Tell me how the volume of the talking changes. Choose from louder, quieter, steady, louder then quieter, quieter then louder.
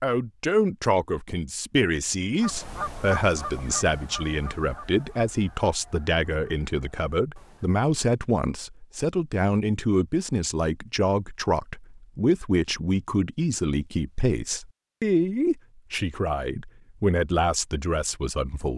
steady.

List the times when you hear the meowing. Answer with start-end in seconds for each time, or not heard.
not heard.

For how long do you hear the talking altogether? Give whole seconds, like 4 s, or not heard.
19 s.